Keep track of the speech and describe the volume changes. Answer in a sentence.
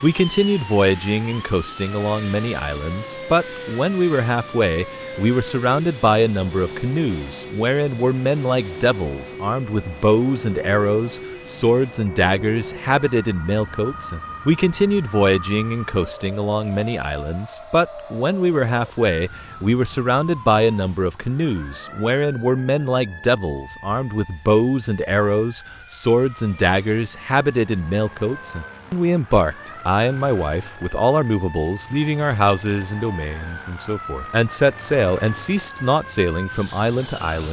The loudness of the speech stays about the same.